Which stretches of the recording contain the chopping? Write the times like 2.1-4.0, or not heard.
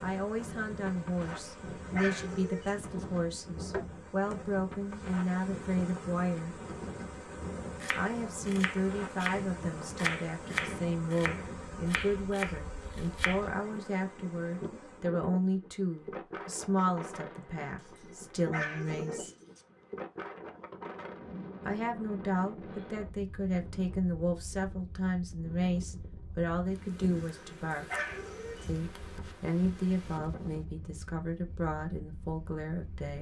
7.8-13.4.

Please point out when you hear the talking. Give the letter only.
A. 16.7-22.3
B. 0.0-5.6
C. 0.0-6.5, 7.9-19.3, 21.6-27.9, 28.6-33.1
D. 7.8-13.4
C.